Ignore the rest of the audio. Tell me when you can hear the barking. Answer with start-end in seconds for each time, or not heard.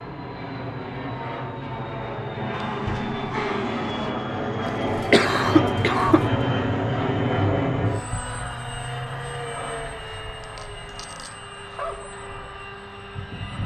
2.5-4.2, 10.4-12.1.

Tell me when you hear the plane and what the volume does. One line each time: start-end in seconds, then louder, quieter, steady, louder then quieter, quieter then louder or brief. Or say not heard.
0.0-13.6 louder then quieter.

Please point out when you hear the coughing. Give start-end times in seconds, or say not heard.
4.7-6.2.